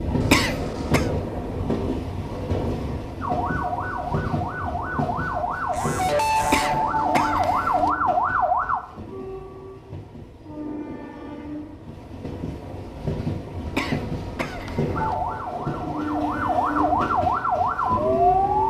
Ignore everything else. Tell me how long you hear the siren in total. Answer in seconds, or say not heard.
9 s.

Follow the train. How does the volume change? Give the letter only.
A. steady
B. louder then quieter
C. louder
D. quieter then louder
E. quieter
D.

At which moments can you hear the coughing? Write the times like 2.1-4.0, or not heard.
0.2-1.1, 6.4-7.9, 13.7-15.2.